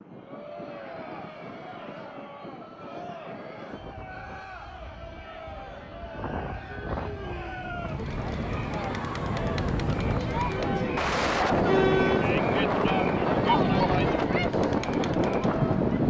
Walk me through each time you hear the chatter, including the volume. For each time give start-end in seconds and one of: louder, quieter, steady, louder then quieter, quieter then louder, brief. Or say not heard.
0.1-16.0 louder.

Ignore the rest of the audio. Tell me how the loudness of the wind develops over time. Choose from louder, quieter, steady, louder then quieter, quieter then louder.
louder.